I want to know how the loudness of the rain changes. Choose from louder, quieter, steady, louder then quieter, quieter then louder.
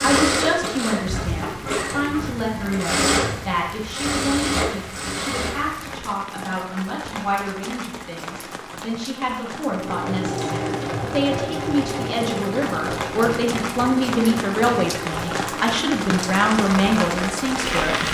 louder.